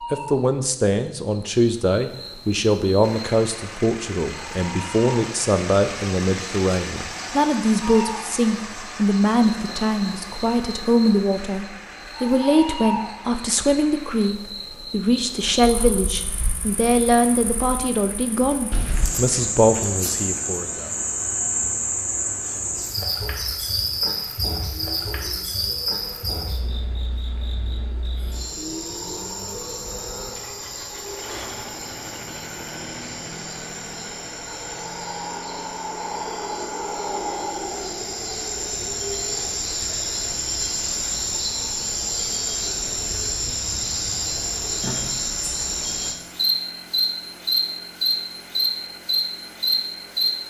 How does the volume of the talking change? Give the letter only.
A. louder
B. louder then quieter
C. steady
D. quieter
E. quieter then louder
C.